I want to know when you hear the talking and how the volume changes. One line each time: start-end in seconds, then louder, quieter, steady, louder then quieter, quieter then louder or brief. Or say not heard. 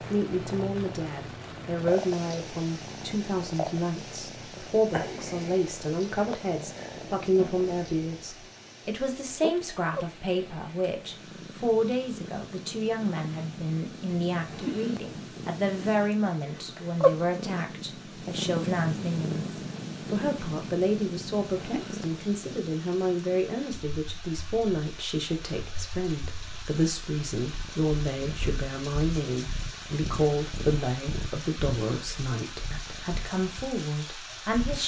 0.0-34.8 steady.